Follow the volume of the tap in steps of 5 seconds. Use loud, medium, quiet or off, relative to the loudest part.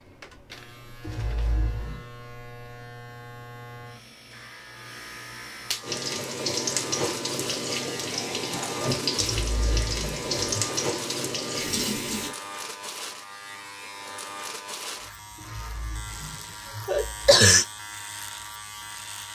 off, loud, loud, off.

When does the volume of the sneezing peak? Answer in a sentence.
The volume of the sneezing peaks at 17 seconds.